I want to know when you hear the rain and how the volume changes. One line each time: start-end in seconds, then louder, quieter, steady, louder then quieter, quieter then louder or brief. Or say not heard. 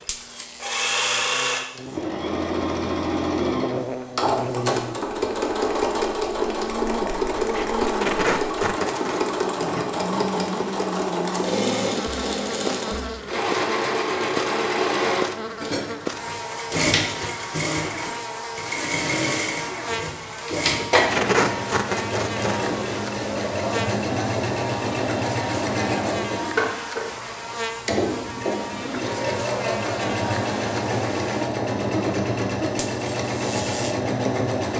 not heard.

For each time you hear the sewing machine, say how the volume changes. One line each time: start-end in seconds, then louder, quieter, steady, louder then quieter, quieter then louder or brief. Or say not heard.
0.0-34.7 steady.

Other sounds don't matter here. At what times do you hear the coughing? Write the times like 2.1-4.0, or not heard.
not heard.